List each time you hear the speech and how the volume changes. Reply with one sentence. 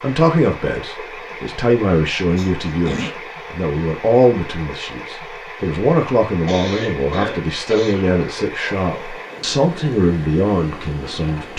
You can hear the speech from 0.0 to 11.5 s, at a steady volume.